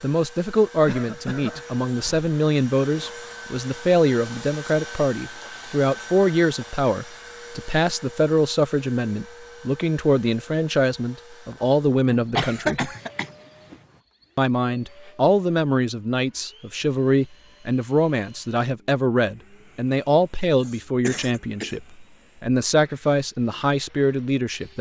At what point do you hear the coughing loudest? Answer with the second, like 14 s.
13 s.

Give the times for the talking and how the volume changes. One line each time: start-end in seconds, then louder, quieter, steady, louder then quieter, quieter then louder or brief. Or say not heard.
0.0-12.9 steady
14.3-24.7 steady.